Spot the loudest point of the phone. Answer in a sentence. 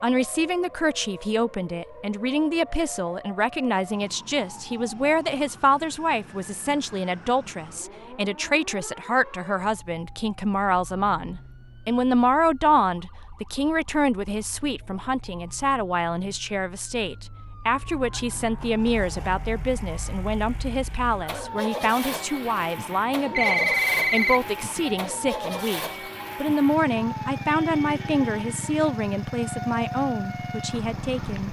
The loudest moment of the phone is at 24 seconds.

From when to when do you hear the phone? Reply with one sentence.
The phone can be heard from 23.2 to 25.1 s.